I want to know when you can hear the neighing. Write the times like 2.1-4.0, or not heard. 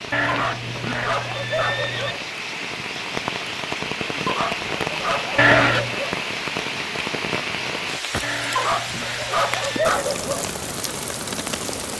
0.1-2.1, 5.3-6.0, 8.2-10.0.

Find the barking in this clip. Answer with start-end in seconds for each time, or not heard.
0.2-2.2, 4.2-6.2, 8.6-10.5.